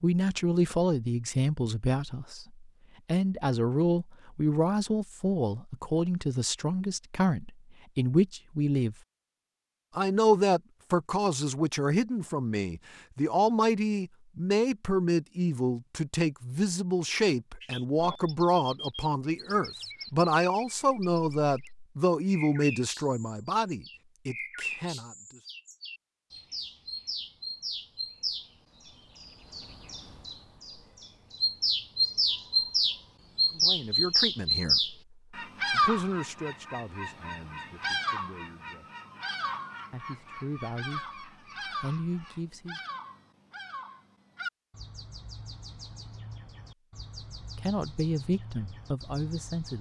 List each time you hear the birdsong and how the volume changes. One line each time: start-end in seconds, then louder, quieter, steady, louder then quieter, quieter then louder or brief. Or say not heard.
17.6-49.7 louder then quieter.